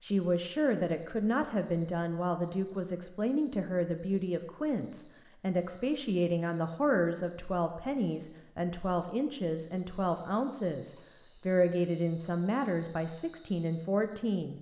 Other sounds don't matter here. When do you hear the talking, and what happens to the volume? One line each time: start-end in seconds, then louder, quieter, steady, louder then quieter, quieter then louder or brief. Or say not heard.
0.0-14.5 steady.